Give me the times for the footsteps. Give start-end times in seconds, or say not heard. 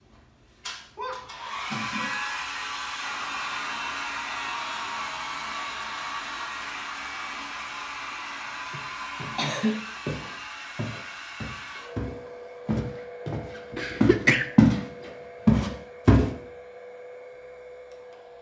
10.1-14.8, 15.4-16.2.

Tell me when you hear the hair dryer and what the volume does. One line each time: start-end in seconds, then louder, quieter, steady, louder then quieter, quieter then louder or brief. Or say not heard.
0.0-18.3 quieter.